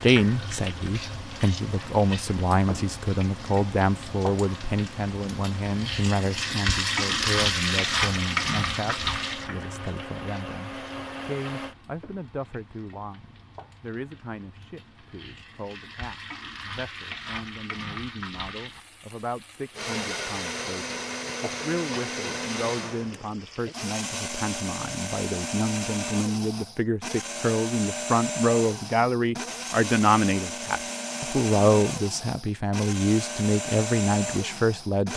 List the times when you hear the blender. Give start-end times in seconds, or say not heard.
0.2-11.8, 19.7-35.1.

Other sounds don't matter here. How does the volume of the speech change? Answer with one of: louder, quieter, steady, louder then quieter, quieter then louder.
quieter then louder.